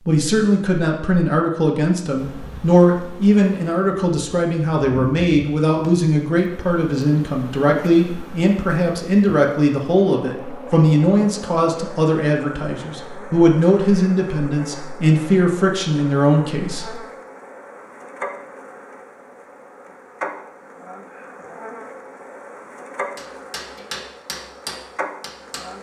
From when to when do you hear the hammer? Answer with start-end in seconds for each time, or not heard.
23.1-25.7.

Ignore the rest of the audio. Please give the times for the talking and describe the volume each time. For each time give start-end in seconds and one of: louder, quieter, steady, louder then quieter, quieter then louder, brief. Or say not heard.
0.1-16.9 steady.